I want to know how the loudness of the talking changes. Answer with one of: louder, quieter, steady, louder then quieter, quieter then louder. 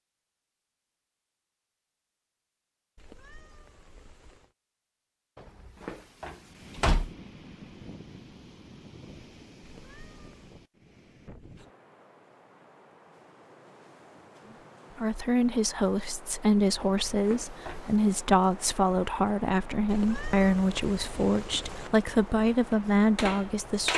steady.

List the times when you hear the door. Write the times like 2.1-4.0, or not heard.
5.3-7.1, 16.8-18.2.